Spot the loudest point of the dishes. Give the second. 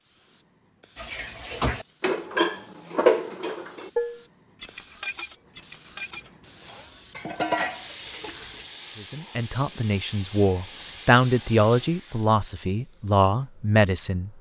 3 s.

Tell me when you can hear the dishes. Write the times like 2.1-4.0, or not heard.
0.9-8.4.